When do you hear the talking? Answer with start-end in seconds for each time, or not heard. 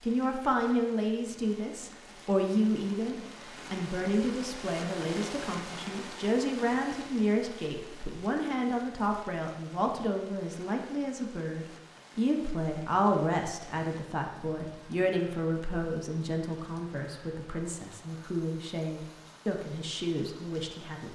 0.0-21.0.